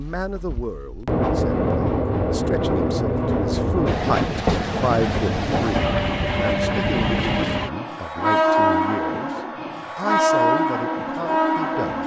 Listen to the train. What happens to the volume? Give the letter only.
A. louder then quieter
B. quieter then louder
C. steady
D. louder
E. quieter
C.